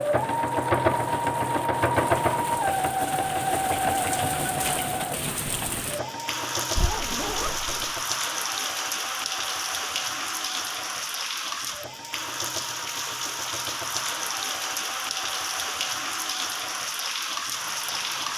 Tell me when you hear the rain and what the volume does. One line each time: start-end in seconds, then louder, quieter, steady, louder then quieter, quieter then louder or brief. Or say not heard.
0.0-18.3 louder.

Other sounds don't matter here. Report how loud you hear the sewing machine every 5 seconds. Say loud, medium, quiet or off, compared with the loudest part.
loud, quiet, quiet, quiet.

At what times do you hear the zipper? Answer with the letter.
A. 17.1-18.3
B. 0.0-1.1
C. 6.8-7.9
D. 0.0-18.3
C.